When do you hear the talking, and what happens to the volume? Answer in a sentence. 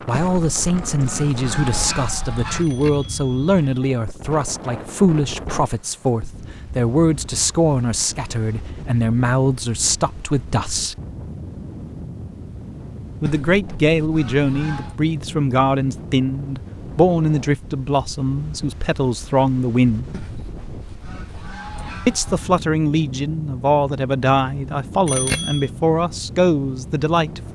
You can hear the talking from 0.1 to 10.9 s, at a steady volume; from 13.2 to 20.1 s, at a steady volume; and from 22.1 to 27.5 s, at a steady volume.